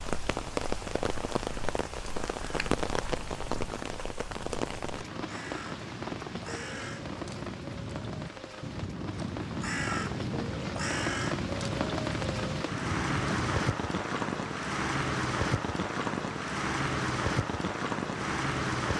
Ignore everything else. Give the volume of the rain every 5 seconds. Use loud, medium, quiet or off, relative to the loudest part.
loud, medium, loud, loud.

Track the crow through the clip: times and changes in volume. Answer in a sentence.
You can hear the crow from 2.4 to 13.7 s, getting louder.